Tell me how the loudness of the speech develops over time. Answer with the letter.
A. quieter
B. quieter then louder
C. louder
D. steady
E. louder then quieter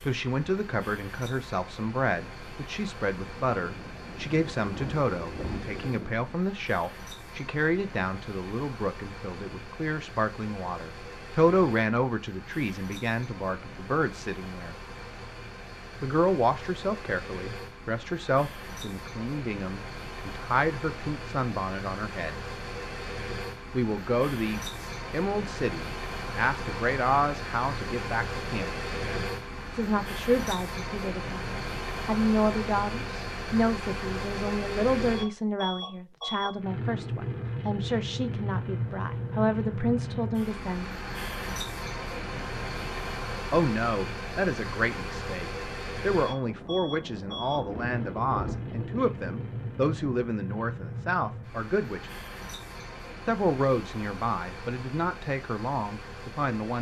D.